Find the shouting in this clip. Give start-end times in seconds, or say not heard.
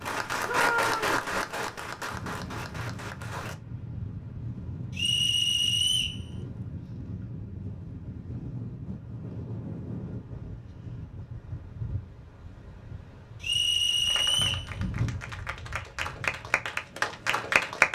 0.4-1.2.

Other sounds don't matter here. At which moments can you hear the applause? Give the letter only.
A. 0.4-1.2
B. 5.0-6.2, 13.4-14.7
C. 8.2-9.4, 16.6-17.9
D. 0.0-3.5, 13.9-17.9
D.